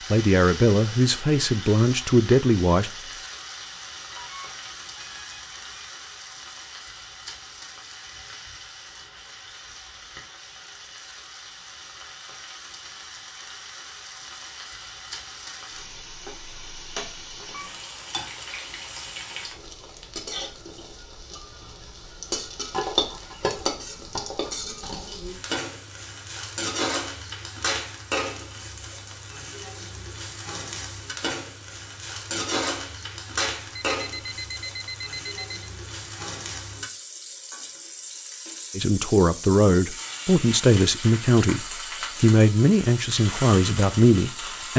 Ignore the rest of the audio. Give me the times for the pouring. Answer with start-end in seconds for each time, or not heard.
not heard.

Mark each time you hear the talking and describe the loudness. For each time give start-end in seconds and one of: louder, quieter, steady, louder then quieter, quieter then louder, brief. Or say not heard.
0.1-2.9 brief
38.8-44.7 steady.